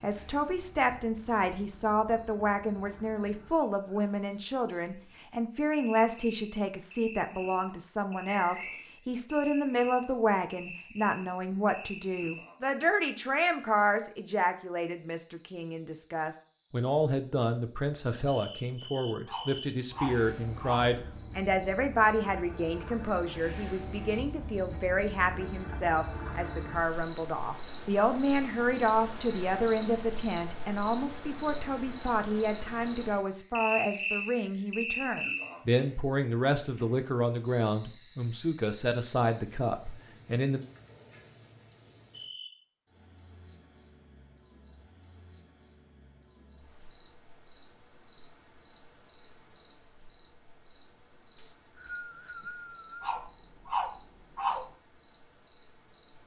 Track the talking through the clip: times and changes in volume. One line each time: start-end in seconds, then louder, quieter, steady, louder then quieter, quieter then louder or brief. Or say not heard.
0.0-40.6 steady.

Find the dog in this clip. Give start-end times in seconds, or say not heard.
19.2-20.9, 53.0-54.8.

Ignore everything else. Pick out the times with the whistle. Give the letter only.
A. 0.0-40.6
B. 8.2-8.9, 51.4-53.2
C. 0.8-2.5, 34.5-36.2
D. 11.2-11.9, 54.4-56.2
B.